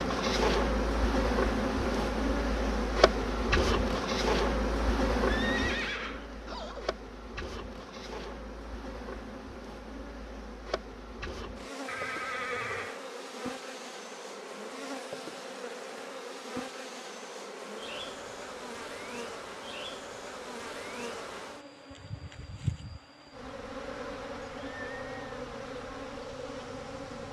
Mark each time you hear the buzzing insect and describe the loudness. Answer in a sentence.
You can hear the buzzing insect from 0.0 to 27.2 s, getting quieter.